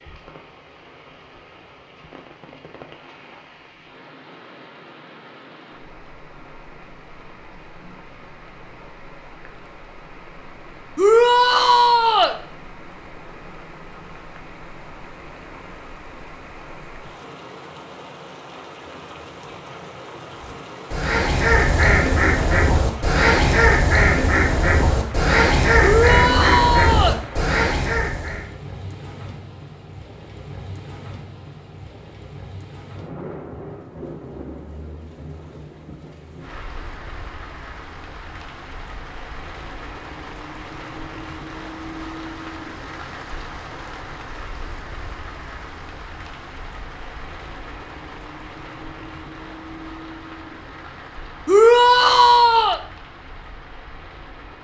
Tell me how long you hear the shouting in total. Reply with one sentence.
The shouting can be heard for 4 seconds in total.